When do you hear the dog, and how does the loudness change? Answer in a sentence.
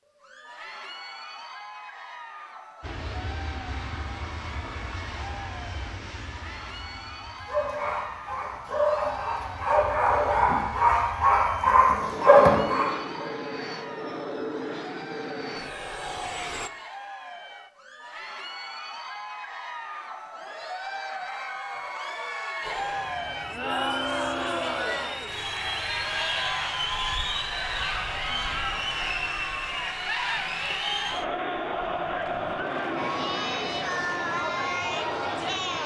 The dog can be heard from 7.5 to 13.2 s, getting louder.